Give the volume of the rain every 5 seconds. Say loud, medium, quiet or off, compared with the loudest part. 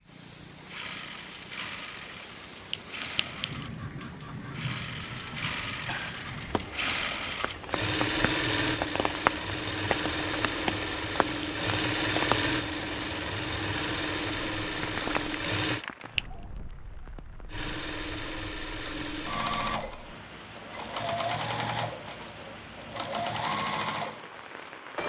medium, loud, loud, medium, medium.